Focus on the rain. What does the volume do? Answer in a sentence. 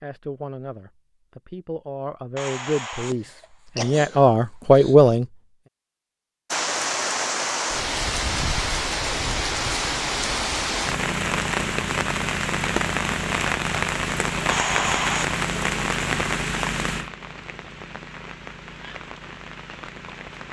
The loudness of the rain goes down.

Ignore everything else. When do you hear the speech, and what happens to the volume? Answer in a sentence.
The speech can be heard from 0.0 to 5.2 s, getting louder.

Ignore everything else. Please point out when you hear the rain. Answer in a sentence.
You can hear the rain from 6.5 to 20.4 s.